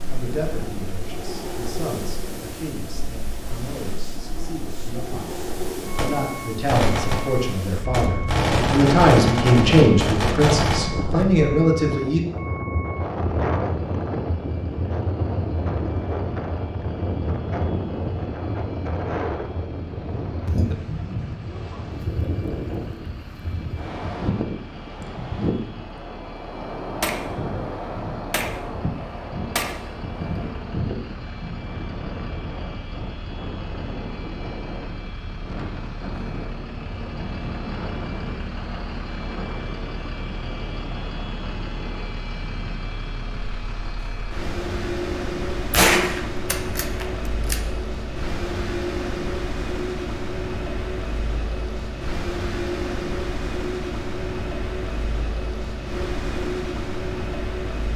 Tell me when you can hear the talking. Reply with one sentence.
You can hear the talking from 0.0 to 12.2 s.